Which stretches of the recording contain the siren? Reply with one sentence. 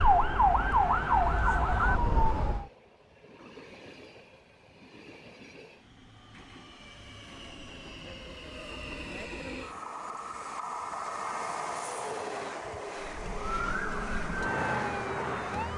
The siren can be heard from 0.0 to 2.7 s and from 12.9 to 15.7 s.